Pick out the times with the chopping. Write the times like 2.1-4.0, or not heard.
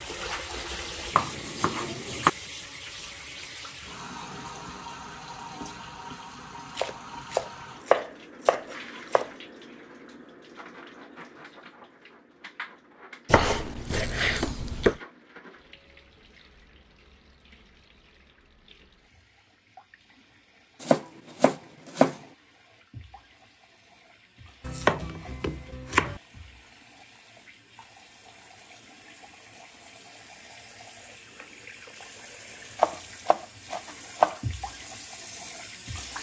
1.1-2.3, 6.8-9.3, 13.2-15.0, 20.8-22.1, 24.6-26.2, 32.8-34.4.